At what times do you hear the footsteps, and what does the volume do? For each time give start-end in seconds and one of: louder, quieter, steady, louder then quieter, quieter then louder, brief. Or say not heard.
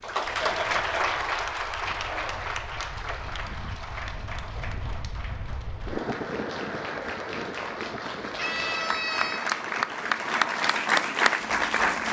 not heard.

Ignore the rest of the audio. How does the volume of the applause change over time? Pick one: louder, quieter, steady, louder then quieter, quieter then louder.
quieter then louder.